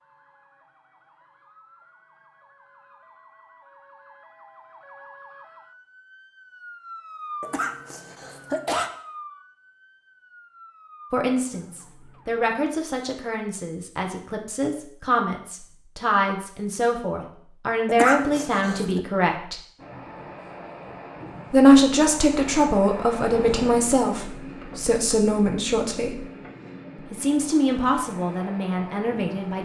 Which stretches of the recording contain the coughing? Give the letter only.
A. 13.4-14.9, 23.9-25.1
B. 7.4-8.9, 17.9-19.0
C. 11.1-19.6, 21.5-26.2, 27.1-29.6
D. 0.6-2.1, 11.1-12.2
B.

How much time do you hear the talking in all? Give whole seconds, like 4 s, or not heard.
16 s.